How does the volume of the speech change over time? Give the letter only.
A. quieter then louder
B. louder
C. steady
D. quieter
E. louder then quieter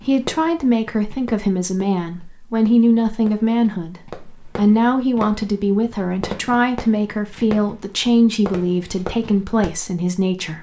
C.